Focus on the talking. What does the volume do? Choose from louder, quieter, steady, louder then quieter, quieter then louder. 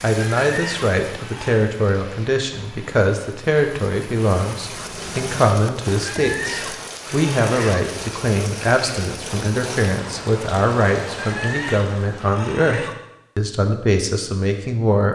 steady.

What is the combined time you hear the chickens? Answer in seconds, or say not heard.
5 s.